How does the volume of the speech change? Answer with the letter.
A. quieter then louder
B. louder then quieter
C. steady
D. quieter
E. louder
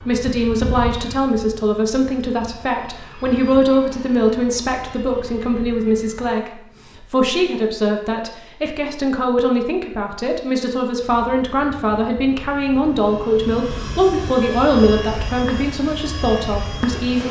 C.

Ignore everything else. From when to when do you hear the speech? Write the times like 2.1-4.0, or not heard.
0.1-17.2.